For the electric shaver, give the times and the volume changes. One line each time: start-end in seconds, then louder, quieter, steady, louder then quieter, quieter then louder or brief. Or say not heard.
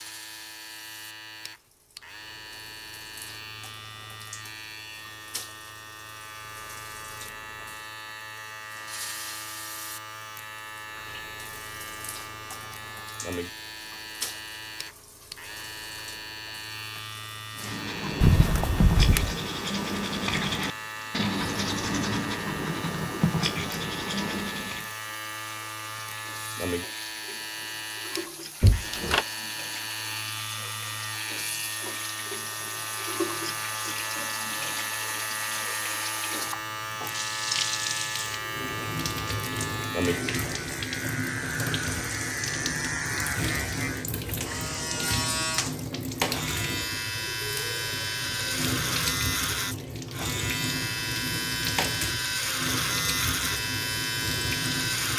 0.0-55.1 louder.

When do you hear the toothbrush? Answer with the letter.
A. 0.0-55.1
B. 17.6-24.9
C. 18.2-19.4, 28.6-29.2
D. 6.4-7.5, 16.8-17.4
B.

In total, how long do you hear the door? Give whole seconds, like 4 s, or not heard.
2 s.